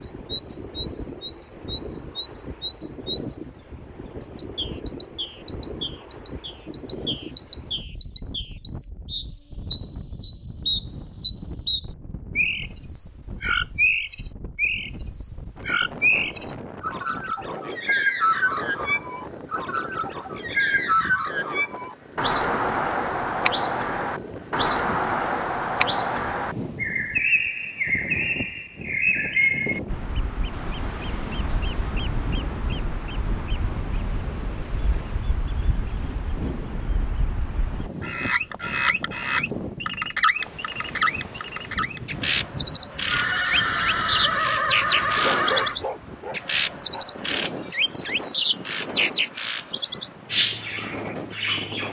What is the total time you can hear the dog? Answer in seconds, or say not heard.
2 s.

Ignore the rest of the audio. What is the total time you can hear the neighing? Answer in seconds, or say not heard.
3 s.